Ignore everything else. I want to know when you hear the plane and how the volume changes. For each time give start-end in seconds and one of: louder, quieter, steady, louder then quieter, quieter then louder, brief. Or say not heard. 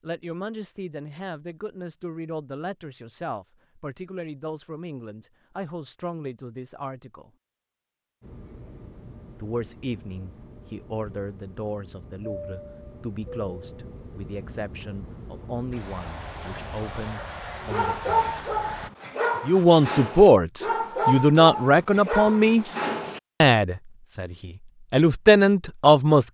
8.2-18.9 louder.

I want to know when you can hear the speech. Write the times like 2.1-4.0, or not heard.
0.0-7.3, 9.3-18.1, 19.4-22.6, 23.4-26.2.